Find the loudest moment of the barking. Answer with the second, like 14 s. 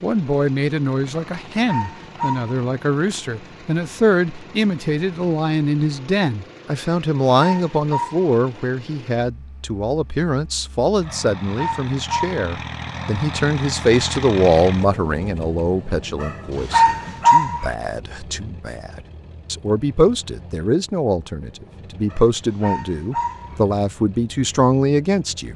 17 s.